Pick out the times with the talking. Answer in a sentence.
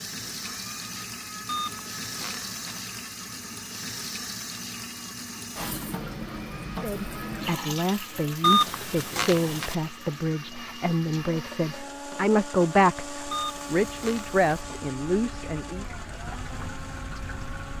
The talking can be heard from 6.8 to 15.8 s.